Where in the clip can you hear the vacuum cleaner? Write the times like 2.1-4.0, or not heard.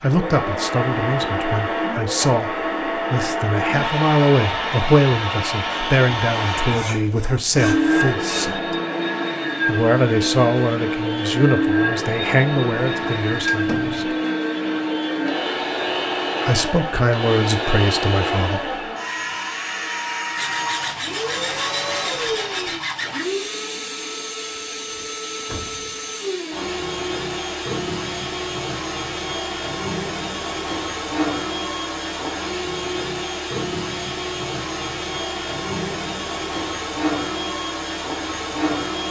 0.0-39.0.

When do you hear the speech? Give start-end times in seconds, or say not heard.
0.0-8.8, 9.7-14.1, 16.4-18.6.